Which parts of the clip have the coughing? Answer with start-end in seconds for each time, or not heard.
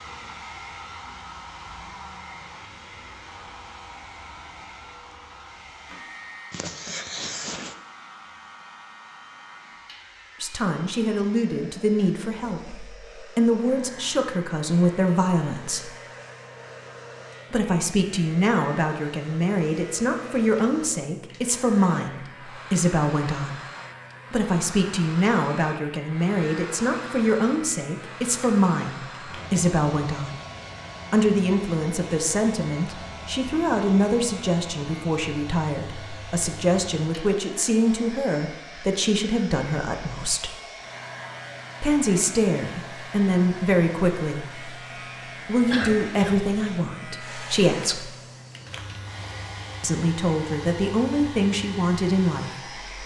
6.5-7.8, 45.7-46.4.